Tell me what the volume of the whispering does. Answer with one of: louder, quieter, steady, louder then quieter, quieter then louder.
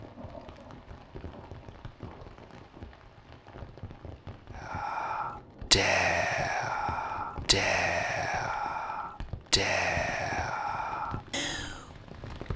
quieter.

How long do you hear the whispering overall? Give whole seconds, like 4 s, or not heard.
7 s.